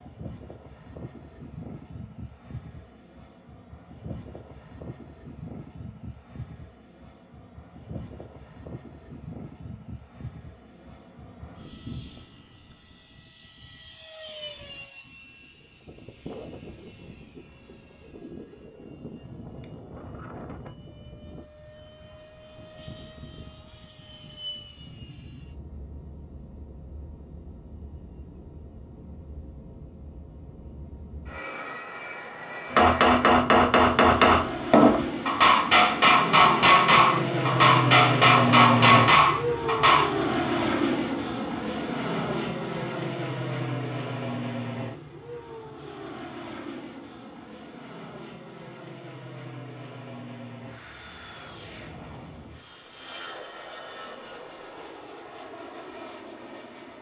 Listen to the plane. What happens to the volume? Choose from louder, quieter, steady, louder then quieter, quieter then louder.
louder then quieter.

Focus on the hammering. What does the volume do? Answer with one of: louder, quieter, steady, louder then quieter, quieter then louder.
steady.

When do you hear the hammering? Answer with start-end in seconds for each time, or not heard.
32.7-40.1.